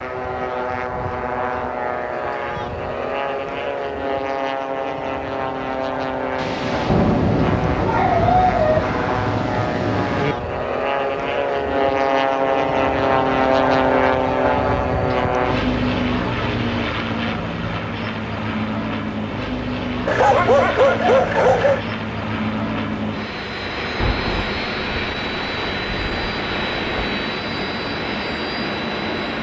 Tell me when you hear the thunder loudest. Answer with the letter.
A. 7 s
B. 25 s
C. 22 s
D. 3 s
A.